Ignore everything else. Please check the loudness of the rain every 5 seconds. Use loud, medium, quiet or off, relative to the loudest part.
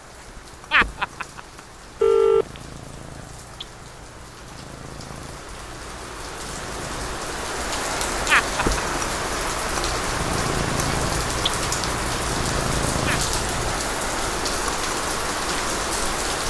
quiet, loud, loud, loud.